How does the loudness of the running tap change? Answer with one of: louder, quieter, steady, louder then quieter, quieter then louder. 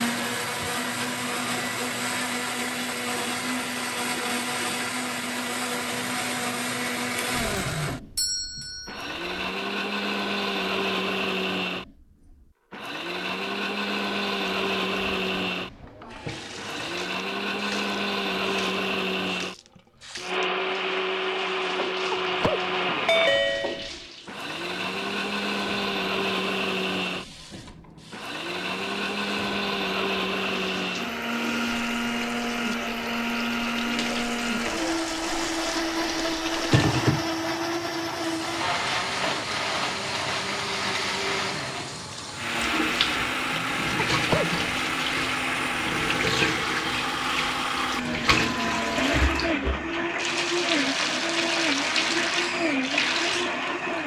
louder.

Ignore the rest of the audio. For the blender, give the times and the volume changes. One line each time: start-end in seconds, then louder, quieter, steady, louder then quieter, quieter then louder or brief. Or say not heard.
0.0-54.0 steady.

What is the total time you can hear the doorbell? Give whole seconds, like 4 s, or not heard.
4 s.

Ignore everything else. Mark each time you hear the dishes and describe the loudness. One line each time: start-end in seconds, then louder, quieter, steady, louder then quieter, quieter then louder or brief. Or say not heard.
not heard.